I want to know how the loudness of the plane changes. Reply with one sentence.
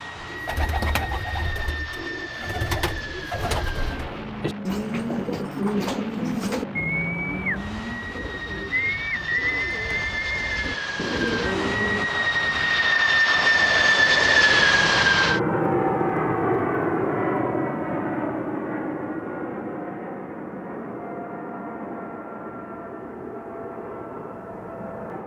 The loudness of the plane goes up, then down.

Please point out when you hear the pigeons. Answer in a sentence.
The pigeons can be heard from 0.1 to 12.1 s.